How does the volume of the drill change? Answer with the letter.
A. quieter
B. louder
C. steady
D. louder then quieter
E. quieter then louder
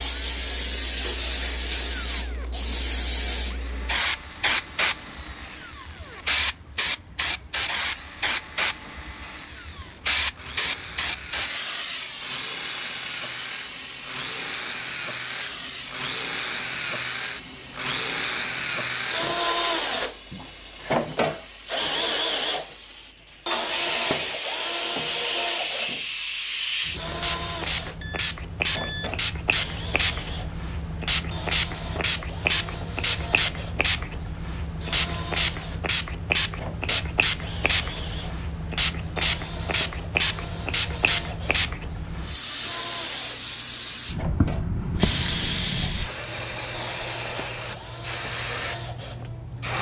D.